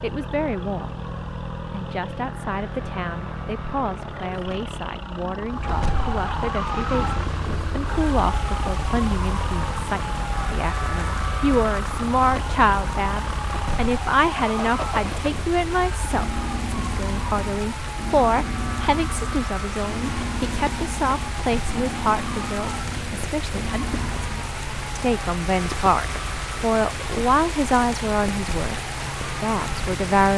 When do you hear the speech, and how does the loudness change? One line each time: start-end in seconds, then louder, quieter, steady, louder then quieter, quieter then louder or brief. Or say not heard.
0.0-1.1 brief
1.7-28.8 louder
29.4-30.3 brief.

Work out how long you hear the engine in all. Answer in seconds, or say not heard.
24 s.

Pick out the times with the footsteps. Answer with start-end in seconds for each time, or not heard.
not heard.